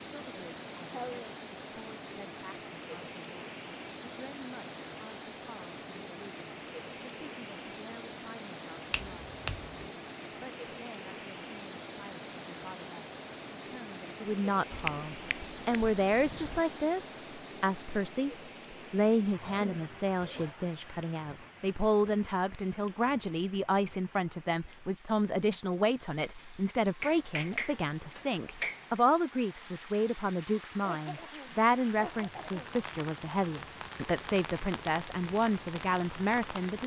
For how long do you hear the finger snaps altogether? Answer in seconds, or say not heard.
5 s.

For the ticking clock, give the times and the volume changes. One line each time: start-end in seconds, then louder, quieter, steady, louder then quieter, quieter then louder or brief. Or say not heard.
not heard.